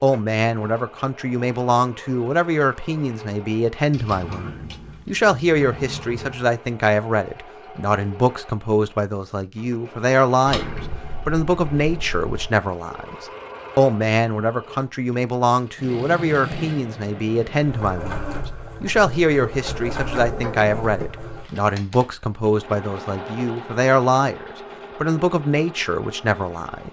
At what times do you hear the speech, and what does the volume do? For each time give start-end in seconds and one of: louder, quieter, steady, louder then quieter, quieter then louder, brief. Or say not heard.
0.0-26.8 steady.